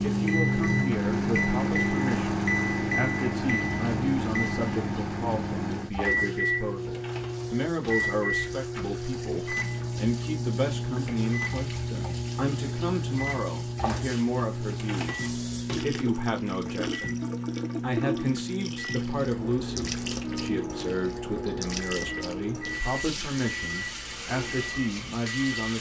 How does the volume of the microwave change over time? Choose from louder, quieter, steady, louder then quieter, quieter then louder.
quieter.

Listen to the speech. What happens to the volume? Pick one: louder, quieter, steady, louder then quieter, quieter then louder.
steady.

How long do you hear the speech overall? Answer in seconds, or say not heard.
25 s.